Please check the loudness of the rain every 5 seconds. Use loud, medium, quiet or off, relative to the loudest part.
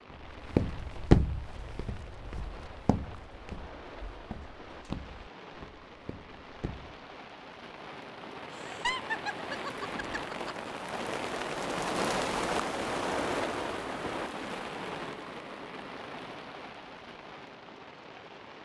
quiet, medium, loud, medium.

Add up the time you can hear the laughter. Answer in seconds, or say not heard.
2 s.